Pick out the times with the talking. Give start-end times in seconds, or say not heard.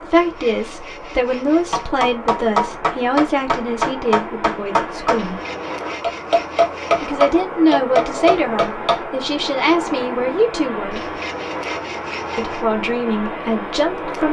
0.0-5.4, 7.0-11.1, 12.3-14.2.